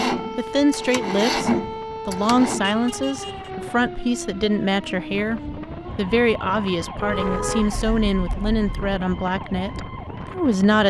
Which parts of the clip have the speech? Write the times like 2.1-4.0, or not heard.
0.3-10.8.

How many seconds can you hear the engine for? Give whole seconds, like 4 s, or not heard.
3 s.